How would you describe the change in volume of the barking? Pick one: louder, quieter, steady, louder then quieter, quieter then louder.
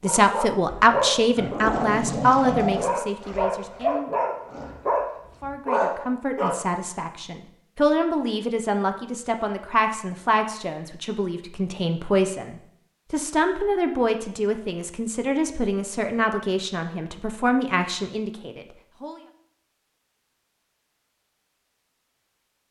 steady.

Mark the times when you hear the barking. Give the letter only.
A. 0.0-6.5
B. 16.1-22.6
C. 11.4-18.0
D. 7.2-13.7
A.